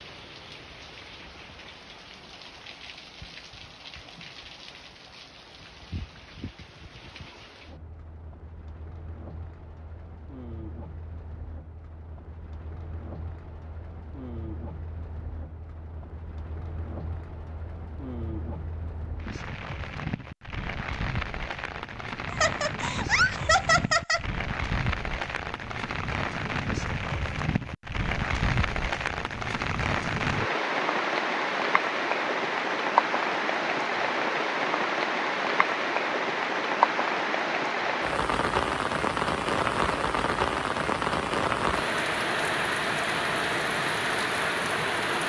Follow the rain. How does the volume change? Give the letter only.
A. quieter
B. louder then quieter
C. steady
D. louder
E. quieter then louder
D.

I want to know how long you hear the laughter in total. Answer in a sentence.
The laughter can be heard for 2 seconds in total.